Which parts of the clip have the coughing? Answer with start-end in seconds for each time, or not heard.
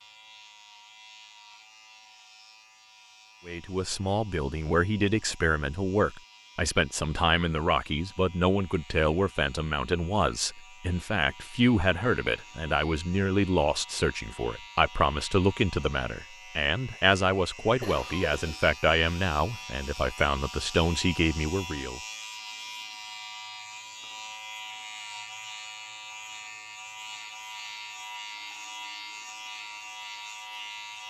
17.8-18.6.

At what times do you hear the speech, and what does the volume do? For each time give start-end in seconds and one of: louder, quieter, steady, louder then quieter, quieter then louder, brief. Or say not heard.
3.5-22.0 steady.